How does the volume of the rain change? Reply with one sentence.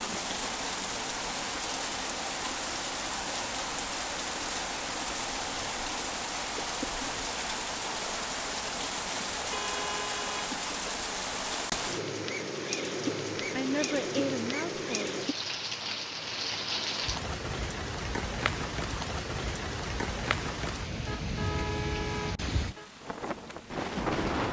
The volume of the rain stays about the same.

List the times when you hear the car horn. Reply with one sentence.
The car horn can be heard from 9.4 to 10.4 s and from 21.0 to 22.9 s.